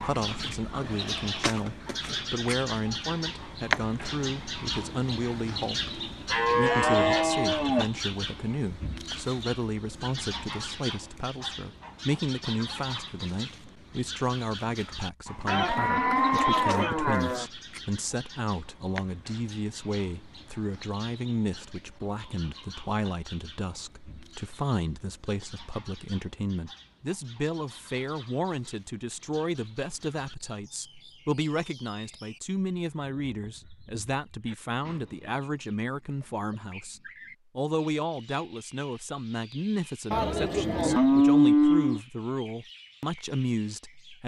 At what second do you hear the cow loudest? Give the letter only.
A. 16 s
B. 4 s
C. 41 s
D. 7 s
C.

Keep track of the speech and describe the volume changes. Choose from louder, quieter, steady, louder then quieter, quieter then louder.
steady.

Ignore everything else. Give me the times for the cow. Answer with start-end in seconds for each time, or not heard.
6.3-7.8, 15.4-17.4, 40.1-42.0.